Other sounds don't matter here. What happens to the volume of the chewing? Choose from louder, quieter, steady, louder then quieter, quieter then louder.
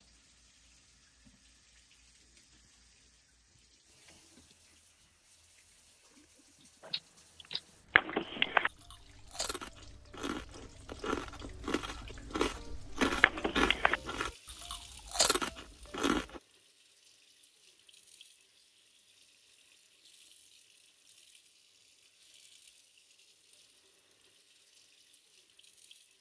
louder.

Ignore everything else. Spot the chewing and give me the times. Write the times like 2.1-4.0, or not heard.
6.8-16.4.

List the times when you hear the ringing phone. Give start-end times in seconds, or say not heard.
8.0-8.7, 13.2-14.0.